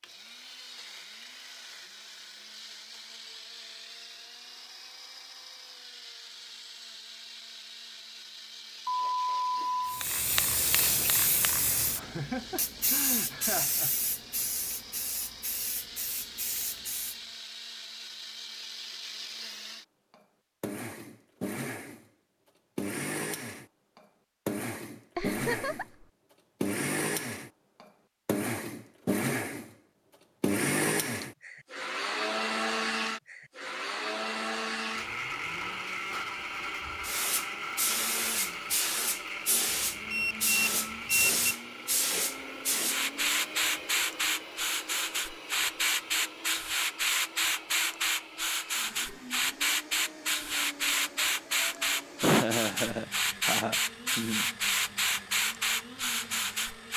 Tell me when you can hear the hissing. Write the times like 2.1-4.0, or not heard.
9.8-17.1, 36.9-56.9.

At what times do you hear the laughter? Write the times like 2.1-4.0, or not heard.
11.9-13.9, 25.1-26.1, 52.2-54.5.